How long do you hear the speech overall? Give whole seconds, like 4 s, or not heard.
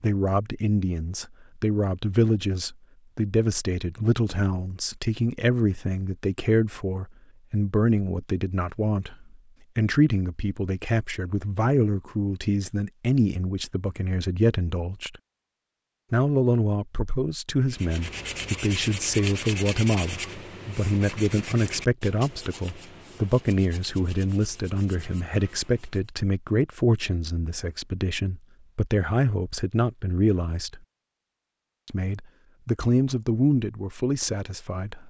33 s.